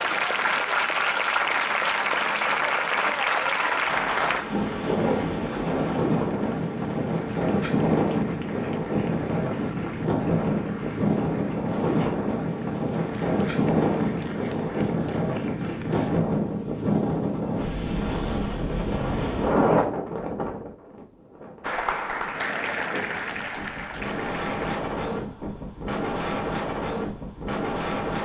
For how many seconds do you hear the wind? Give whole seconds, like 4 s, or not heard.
28 s.